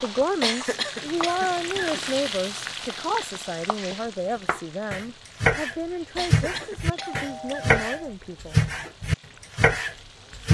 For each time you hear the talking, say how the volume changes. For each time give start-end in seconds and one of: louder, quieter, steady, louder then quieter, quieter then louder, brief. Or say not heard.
0.0-8.7 quieter.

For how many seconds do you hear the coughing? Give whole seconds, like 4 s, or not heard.
3 s.